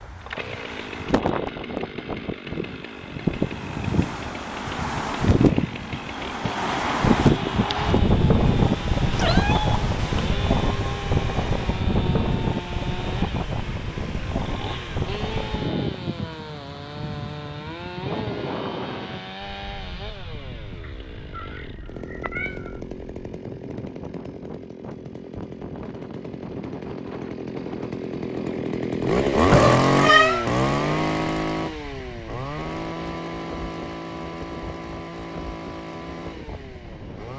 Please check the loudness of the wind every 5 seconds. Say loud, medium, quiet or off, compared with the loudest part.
medium, loud, medium, medium, quiet, quiet, quiet, quiet.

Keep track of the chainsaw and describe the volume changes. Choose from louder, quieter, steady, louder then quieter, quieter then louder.
louder.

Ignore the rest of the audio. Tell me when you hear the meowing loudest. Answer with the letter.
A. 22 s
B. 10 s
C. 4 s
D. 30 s
D.